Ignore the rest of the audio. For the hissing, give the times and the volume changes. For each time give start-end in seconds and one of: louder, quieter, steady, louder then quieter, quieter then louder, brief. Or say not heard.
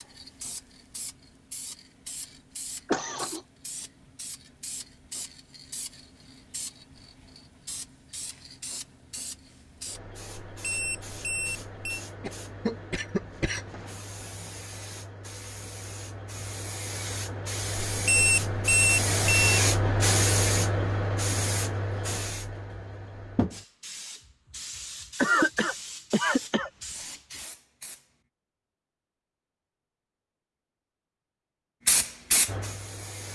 0.0-28.1 louder then quieter
31.9-33.2 brief.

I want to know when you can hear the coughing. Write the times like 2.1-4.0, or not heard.
2.9-3.4, 12.2-13.9, 25.1-26.7.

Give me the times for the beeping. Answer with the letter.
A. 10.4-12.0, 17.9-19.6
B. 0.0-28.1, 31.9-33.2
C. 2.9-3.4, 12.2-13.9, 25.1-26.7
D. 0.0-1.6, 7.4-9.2
A.